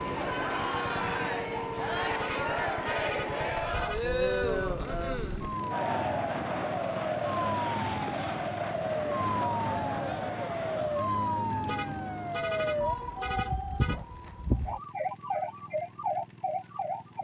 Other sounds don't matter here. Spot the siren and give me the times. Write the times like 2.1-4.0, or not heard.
0.0-17.1.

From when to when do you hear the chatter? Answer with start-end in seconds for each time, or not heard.
0.0-11.1.